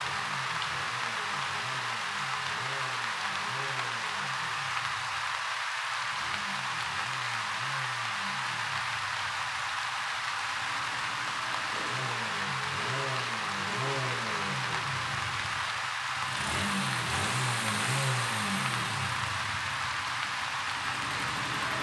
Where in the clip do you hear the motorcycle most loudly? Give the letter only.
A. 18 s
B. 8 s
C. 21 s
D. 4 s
A.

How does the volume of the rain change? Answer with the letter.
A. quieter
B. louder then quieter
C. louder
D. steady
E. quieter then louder
D.